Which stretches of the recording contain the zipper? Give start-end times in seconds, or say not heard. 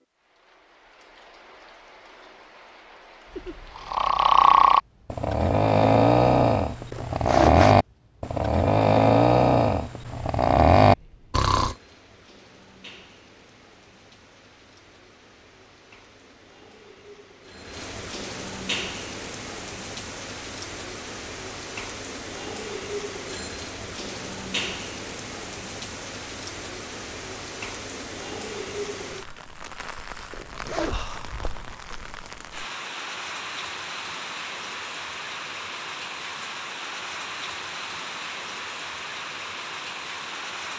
6.9-7.8, 30.3-31.0.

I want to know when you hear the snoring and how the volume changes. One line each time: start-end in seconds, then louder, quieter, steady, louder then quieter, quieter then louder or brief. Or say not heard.
3.4-11.8 steady.